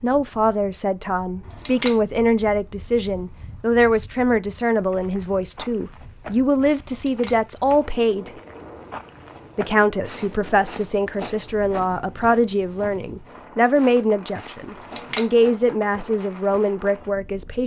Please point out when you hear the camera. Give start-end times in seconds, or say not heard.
1.4-1.9, 6.8-7.3, 14.8-15.2.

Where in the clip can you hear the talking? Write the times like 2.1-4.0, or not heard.
0.0-8.3, 9.6-17.6.